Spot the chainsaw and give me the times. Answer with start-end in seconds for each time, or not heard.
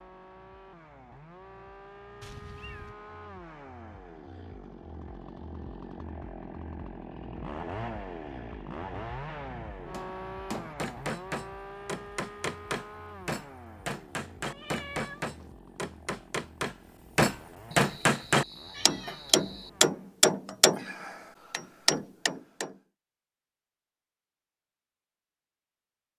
0.0-20.2.